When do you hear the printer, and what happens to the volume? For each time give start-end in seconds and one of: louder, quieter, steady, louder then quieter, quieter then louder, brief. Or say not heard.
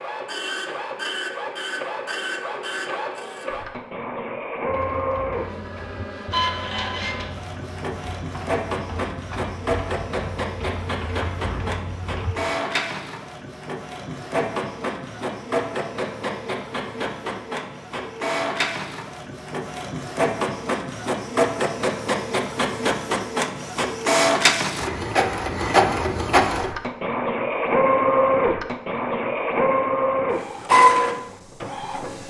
0.0-32.2 louder.